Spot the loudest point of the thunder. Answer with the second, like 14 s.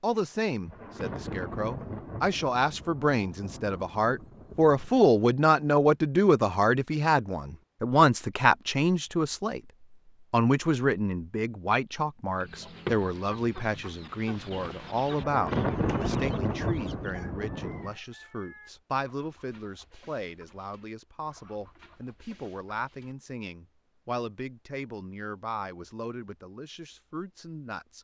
16 s.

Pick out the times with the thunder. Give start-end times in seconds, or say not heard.
0.7-5.0, 15.2-17.9.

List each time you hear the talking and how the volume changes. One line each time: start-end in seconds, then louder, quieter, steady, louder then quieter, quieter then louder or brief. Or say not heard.
0.0-9.6 louder
10.3-27.9 quieter.